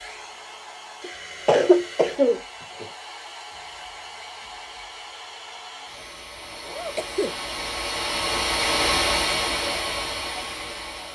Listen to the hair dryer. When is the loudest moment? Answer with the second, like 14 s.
9 s.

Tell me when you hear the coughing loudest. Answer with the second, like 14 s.
2 s.